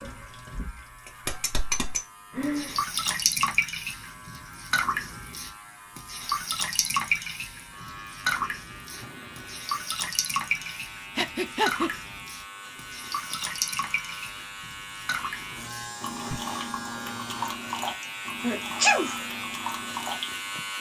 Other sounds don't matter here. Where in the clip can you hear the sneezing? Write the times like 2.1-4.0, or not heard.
18.0-19.1.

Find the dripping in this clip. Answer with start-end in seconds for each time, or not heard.
0.0-20.4.